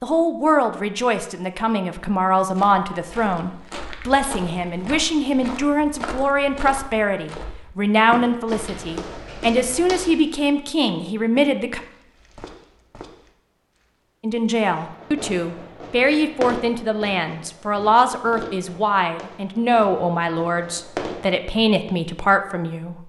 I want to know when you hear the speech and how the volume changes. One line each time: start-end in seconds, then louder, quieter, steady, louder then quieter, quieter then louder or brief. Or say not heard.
0.0-11.8 steady
14.2-22.9 steady.